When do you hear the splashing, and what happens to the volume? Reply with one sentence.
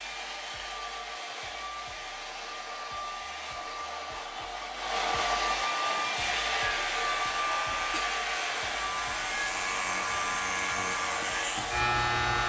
The splashing can't be heard in this clip.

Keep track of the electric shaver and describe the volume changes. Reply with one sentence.
The loudness of the electric shaver goes up.